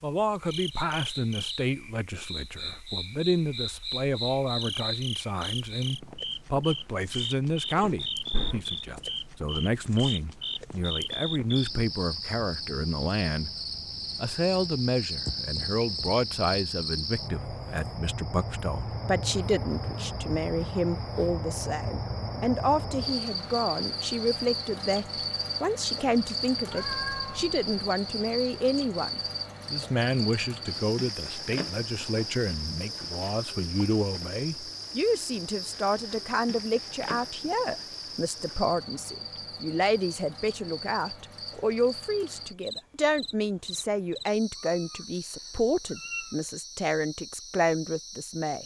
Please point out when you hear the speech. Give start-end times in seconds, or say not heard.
0.0-13.5, 14.2-48.6.